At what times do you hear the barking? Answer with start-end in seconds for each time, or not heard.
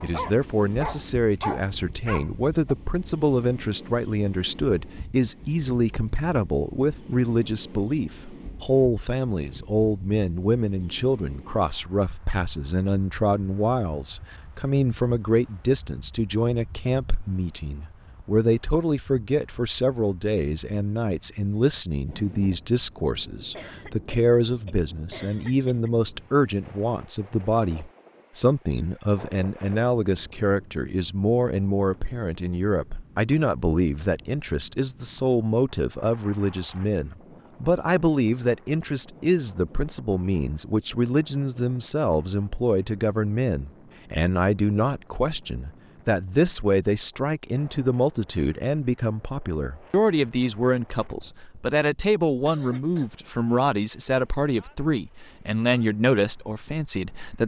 0.0-2.8.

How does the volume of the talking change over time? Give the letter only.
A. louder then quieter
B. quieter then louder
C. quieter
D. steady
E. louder
D.